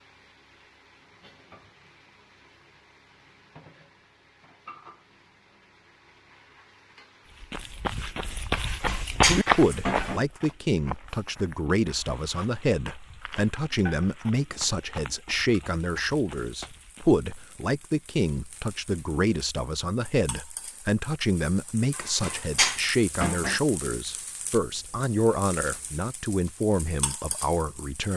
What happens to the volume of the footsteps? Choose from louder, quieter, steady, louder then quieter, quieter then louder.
quieter.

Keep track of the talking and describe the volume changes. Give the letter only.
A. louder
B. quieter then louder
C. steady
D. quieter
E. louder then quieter
C.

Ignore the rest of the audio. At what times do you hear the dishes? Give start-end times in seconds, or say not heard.
8.6-10.2, 21.9-23.6.